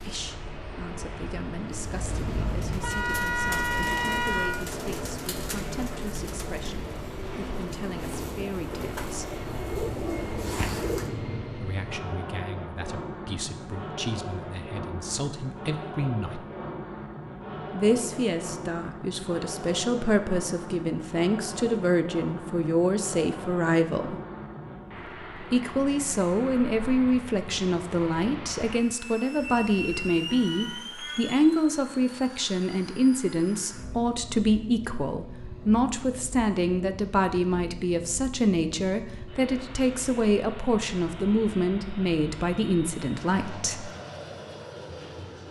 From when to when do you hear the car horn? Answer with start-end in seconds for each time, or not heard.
1.9-4.5, 29.4-30.8.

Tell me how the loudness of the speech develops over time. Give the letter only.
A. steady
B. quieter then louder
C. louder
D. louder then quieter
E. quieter
C.